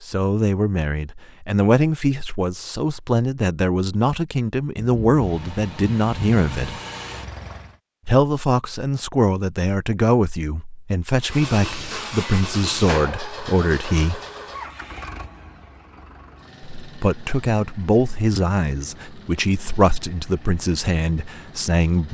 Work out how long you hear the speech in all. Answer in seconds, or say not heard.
18 s.